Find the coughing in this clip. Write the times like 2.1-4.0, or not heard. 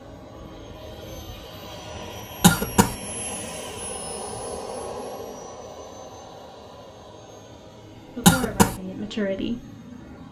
2.4-3.0, 8.2-8.8.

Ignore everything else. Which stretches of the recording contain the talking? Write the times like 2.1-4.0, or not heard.
8.1-9.7.